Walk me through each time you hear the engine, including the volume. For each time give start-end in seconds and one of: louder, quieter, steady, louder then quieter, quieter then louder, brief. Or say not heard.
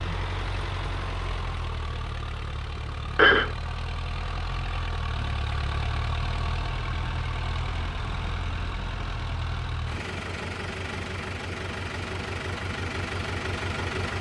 0.0-14.1 steady.